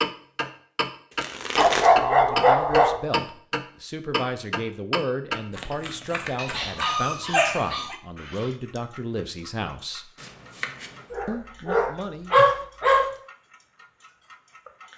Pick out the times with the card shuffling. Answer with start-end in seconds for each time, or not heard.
1.1-1.9, 5.5-6.9, 10.2-11.1.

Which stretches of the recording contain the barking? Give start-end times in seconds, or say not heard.
1.6-3.0, 6.3-8.0, 11.1-13.1.